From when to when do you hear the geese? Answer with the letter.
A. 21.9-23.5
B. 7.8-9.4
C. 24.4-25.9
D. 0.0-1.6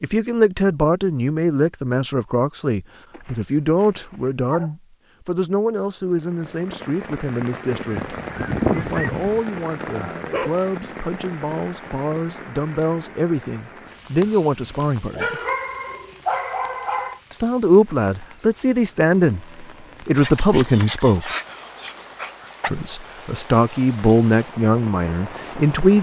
B.